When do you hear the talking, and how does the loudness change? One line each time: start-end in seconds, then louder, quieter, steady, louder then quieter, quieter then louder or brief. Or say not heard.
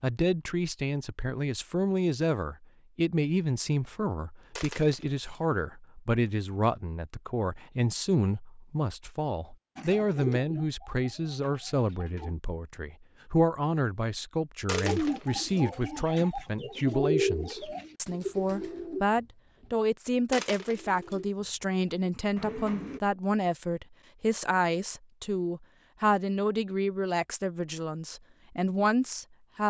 0.0-29.6 steady.